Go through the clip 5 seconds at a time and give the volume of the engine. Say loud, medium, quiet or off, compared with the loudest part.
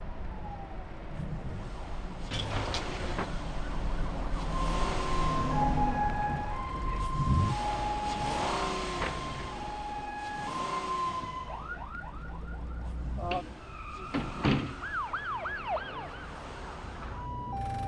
medium, loud, medium, quiet.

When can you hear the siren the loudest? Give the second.
6 s.